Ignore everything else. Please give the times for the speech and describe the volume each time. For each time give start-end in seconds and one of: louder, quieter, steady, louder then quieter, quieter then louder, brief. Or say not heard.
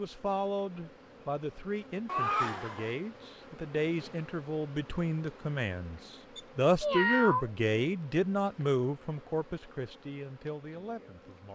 0.0-11.5 louder then quieter.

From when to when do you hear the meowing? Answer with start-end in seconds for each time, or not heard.
2.0-3.0, 6.3-7.5.